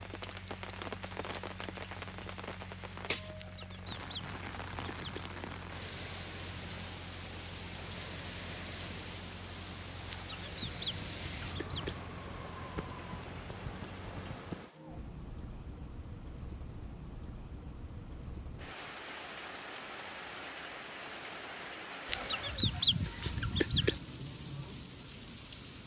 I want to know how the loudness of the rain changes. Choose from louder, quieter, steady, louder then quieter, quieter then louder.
steady.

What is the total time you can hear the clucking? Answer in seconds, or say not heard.
6 s.